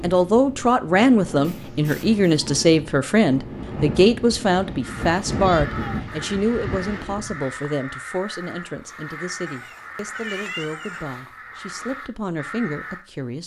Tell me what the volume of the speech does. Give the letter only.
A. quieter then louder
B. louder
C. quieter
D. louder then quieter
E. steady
C.